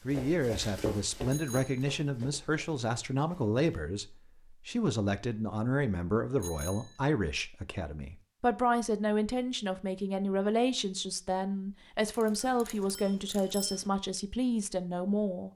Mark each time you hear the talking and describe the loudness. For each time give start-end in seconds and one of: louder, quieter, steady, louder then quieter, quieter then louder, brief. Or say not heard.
0.1-15.5 steady.